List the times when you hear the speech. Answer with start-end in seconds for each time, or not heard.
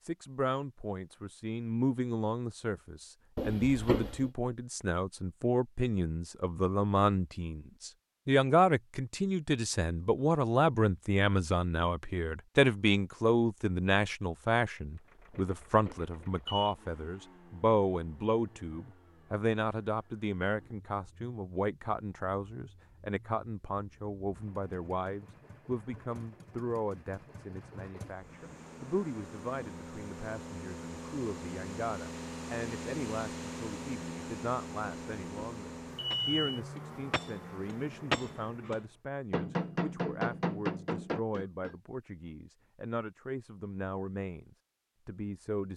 0.0-45.7.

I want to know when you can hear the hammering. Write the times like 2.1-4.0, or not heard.
36.1-41.8.